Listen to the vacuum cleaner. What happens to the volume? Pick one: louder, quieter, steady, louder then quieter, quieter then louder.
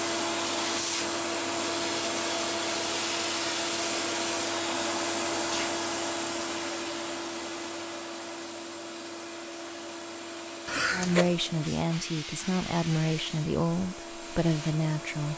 quieter.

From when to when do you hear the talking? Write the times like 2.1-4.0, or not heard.
10.9-15.3.